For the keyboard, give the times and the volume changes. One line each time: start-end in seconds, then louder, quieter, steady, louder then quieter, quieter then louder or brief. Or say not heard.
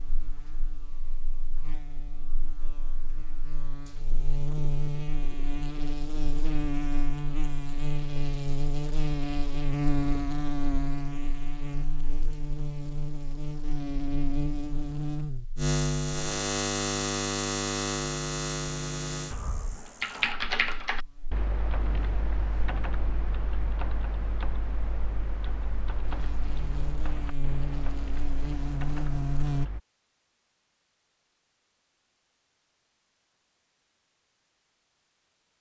19.3-29.8 quieter.